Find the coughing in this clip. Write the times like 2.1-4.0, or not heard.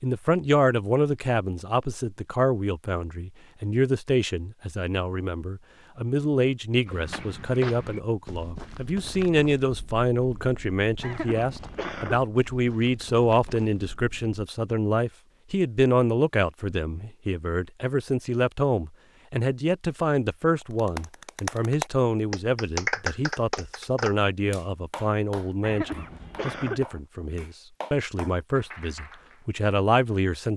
11.0-12.2, 25.6-26.9.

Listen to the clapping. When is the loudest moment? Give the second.
23 s.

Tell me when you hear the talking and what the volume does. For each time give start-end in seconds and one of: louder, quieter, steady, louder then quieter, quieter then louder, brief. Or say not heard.
0.0-30.5 steady.